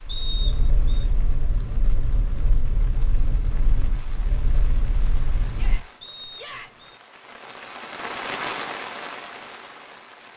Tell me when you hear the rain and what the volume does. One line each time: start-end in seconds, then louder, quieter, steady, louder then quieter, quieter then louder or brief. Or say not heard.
0.0-10.3 louder.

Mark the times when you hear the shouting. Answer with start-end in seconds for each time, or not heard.
5.5-6.9.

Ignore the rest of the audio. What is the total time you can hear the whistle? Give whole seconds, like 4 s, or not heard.
2 s.